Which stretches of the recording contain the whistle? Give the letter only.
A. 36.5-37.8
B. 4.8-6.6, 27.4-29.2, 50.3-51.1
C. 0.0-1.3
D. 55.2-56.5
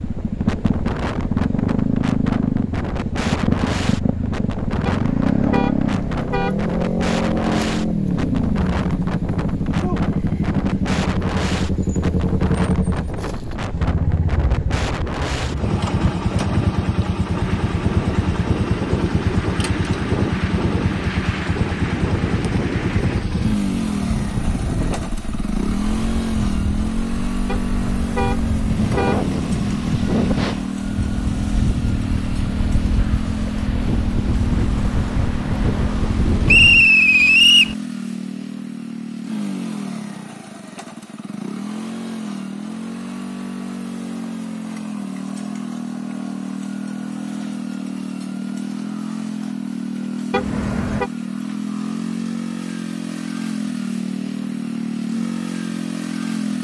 A.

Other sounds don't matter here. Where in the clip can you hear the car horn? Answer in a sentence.
The car horn can be heard from 4.8 to 6.6 s, from 27.4 to 29.2 s and from 50.3 to 51.1 s.